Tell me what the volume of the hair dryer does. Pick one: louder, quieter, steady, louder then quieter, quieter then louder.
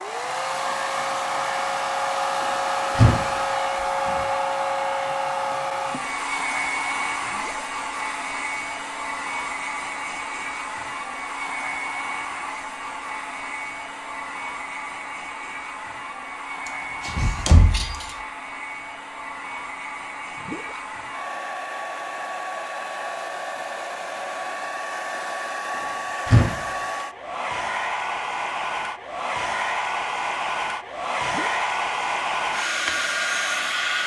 quieter then louder.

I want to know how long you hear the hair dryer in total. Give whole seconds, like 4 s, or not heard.
34 s.